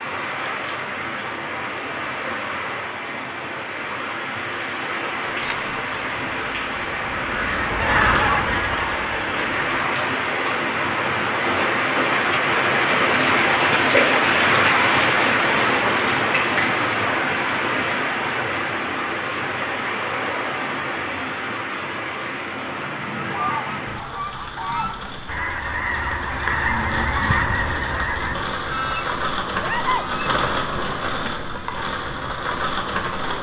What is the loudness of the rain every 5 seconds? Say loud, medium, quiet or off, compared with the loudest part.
medium, medium, loud, loud, medium, medium, medium.